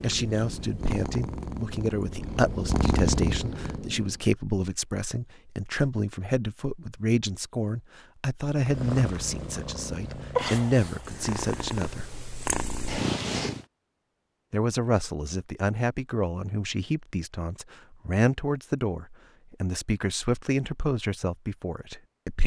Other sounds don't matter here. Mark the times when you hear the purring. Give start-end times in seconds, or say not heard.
0.0-4.2, 8.6-13.7.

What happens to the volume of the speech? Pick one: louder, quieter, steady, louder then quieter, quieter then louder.
steady.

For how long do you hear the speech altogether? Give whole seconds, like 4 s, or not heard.
20 s.